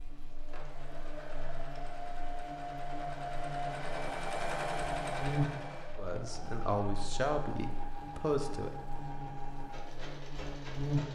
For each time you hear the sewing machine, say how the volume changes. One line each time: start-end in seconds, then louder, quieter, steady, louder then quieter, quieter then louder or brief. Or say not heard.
0.0-11.0 louder then quieter.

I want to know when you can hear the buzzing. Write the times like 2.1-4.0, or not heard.
0.0-11.0.